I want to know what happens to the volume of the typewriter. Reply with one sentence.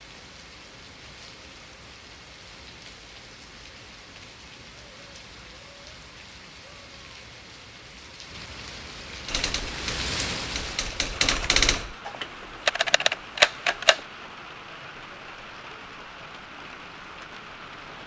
The volume of the typewriter goes up.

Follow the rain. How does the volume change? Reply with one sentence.
The loudness of the rain goes up, then down.